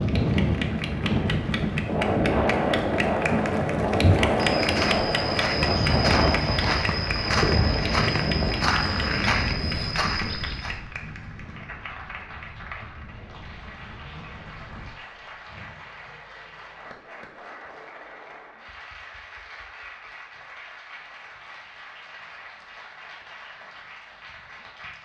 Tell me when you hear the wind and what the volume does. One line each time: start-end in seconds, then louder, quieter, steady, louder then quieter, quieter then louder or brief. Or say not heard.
0.0-15.3 quieter.